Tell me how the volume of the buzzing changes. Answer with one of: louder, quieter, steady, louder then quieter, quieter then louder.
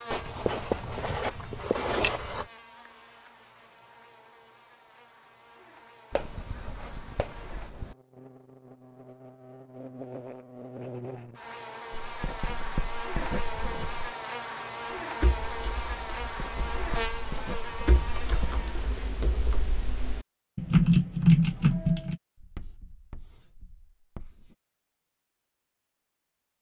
louder.